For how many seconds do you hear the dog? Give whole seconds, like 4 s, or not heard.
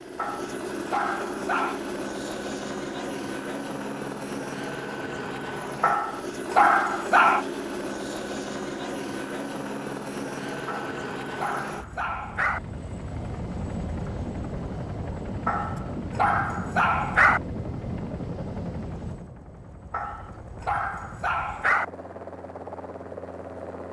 9 s.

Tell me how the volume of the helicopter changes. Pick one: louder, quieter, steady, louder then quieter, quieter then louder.
quieter.